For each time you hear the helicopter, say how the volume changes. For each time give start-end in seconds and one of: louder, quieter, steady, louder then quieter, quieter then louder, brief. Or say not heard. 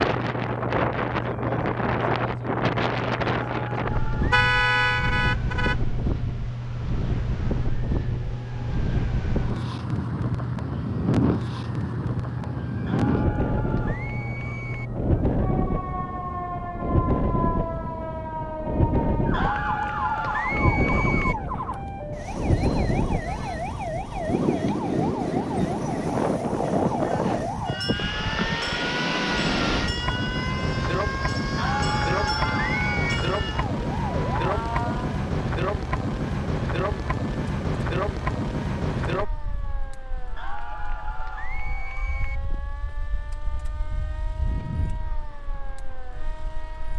not heard.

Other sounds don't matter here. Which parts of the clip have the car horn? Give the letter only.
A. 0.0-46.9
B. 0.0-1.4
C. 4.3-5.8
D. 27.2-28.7
C.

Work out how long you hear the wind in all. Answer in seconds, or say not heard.
47 s.